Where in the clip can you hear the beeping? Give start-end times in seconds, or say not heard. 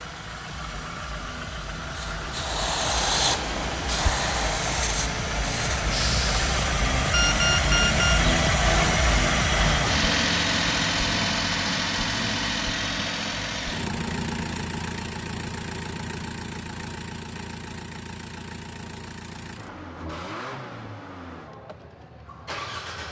7.1-8.3.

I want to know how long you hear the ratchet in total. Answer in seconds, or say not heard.
not heard.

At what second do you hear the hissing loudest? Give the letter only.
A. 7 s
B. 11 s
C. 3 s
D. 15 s
C.